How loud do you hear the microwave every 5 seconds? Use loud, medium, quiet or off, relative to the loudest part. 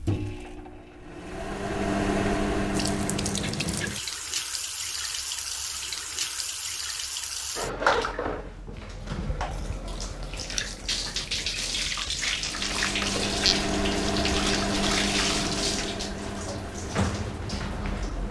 loud, off, loud, medium.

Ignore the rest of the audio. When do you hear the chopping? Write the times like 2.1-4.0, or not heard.
not heard.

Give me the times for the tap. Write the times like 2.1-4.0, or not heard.
2.7-18.2.